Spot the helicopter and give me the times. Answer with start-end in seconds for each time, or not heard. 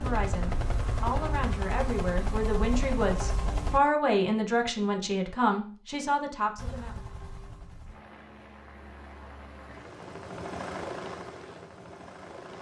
0.0-3.8, 6.5-12.5.